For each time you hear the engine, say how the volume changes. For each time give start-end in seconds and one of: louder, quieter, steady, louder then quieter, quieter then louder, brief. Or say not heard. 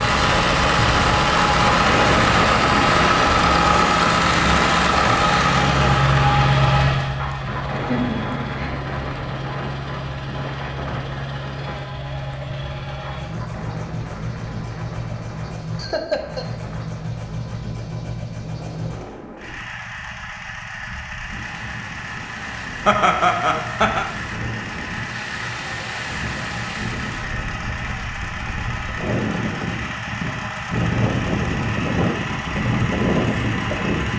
0.0-34.1 quieter.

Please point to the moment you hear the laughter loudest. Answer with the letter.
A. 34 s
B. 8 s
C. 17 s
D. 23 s
D.